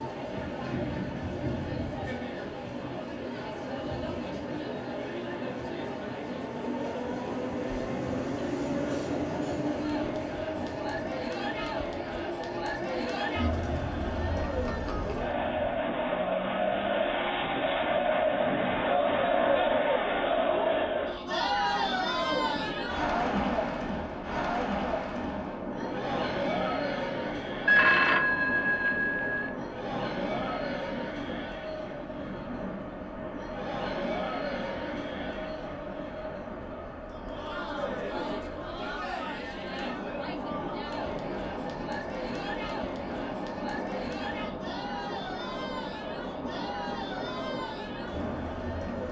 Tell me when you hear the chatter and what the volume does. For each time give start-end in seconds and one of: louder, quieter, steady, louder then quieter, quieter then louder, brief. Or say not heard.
0.0-49.0 louder then quieter.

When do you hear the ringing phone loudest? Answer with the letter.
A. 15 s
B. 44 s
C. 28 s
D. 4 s
C.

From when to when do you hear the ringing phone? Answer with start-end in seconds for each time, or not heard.
27.6-29.6.